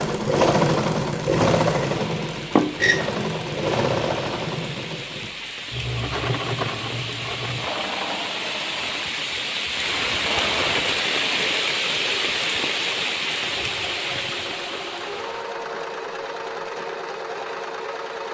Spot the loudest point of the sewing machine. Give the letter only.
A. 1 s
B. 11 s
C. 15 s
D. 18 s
A.